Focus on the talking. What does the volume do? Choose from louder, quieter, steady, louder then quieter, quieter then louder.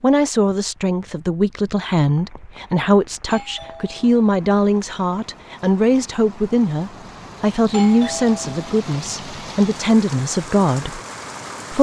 steady.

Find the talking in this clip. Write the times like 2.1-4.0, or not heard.
0.0-11.0.